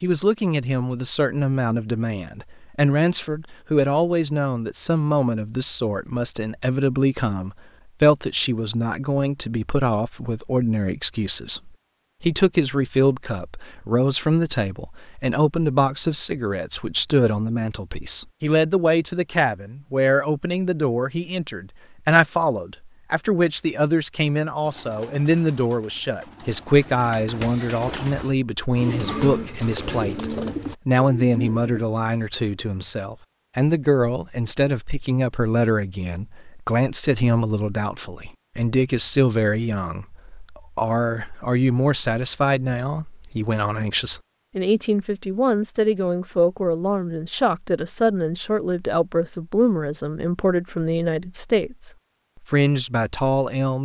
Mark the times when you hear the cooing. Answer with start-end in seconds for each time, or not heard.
24.6-31.9.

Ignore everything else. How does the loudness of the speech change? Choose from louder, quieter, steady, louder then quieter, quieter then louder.
steady.